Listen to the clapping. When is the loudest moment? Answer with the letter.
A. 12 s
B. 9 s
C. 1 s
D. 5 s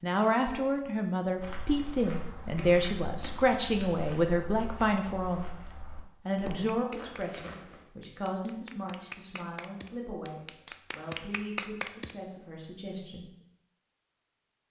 A.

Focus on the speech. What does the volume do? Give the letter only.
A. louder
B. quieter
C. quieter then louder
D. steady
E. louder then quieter
B.